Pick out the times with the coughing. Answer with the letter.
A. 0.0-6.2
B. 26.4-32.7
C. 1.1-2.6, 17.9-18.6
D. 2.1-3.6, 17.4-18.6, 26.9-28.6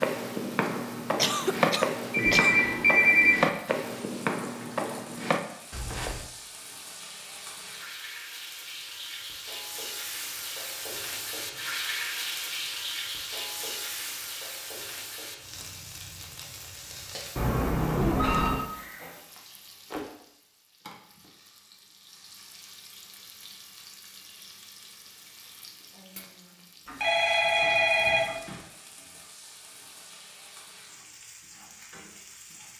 C.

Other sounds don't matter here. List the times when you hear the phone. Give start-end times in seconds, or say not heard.
2.1-3.6, 17.4-18.6, 26.9-28.6.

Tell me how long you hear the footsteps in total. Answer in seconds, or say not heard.
6 s.